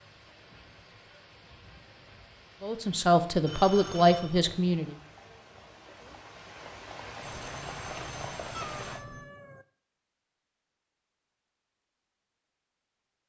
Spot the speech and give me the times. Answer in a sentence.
You can hear the speech from 2.6 to 5.0 s.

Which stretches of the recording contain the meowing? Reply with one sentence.
The meowing can be heard from 8.5 to 9.7 s.